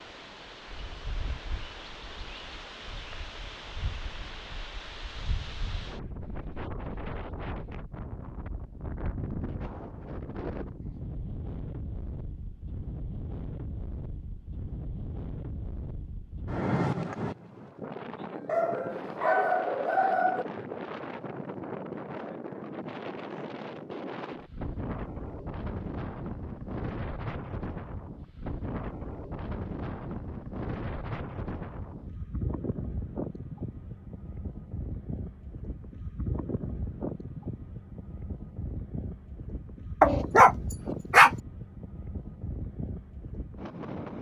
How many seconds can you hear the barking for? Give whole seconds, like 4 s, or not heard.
3 s.